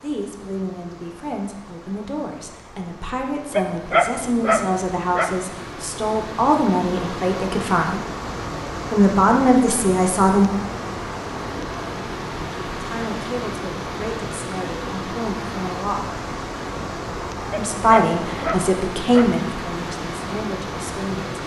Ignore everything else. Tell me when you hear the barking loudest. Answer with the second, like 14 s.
4 s.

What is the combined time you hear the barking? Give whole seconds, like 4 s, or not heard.
4 s.